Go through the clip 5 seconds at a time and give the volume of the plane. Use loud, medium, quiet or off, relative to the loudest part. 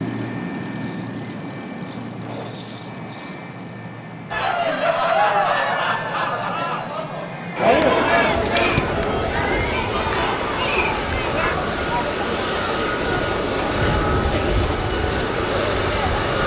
medium, medium, loud, loud.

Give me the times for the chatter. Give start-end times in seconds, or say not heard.
4.3-16.4.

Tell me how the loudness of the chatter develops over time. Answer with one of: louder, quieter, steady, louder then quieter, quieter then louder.
quieter.